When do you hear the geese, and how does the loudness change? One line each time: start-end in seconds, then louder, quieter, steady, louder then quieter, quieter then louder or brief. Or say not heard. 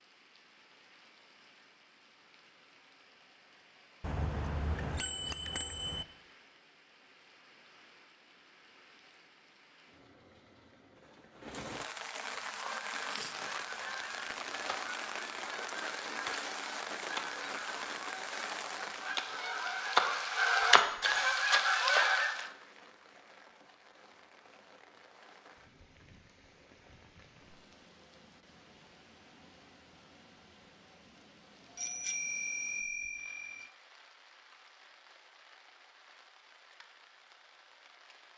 12.4-22.4 louder.